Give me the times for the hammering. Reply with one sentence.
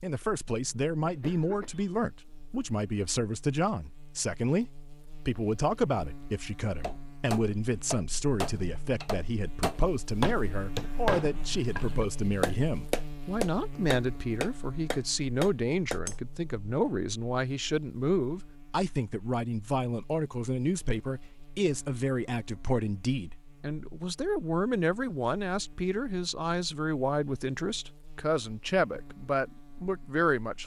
The hammering can be heard from 6.8 to 16.1 s.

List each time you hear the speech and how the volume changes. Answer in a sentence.
The speech can be heard from 0.0 to 30.6 s, at a steady volume.